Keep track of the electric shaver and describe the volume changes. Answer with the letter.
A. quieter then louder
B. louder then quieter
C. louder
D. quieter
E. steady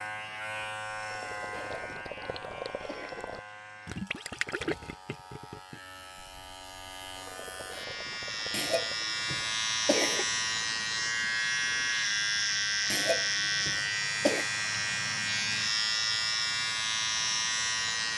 A.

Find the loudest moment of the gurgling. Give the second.
5 s.